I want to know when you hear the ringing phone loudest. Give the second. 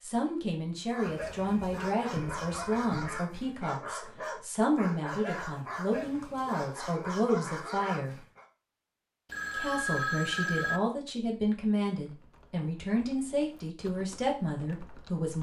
10 s.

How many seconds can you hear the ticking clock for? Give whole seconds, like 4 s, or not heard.
not heard.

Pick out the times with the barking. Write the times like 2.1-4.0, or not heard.
0.9-8.4.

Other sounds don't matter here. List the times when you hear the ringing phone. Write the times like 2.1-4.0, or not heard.
1.2-3.1, 9.2-10.8.